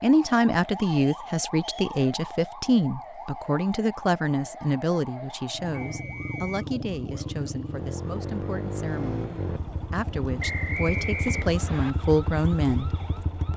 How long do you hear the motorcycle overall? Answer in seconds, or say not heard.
8 s.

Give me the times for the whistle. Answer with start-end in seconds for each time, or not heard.
0.8-2.0, 5.7-6.7, 10.4-11.9.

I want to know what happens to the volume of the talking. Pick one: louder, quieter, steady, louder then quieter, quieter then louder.
quieter then louder.